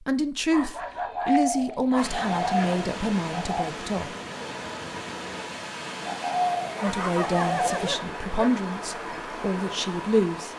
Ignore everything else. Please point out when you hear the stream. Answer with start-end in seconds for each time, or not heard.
1.9-10.5.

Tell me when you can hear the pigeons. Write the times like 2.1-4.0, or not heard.
0.9-3.6, 6.0-8.0.